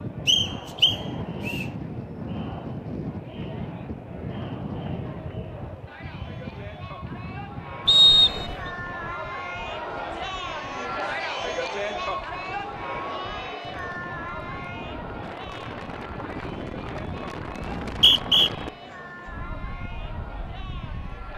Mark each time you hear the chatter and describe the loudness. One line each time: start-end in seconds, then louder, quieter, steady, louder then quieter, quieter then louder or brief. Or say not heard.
0.0-21.3 louder then quieter.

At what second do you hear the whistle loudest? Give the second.
8 s.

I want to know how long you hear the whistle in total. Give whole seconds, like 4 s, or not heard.
3 s.